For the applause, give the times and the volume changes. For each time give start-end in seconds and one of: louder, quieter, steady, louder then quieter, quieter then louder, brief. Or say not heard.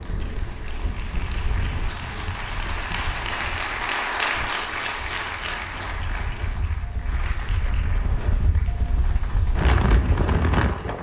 0.0-10.9 louder then quieter.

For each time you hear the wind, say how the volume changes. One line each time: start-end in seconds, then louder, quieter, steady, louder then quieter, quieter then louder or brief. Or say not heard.
0.0-10.9 quieter then louder.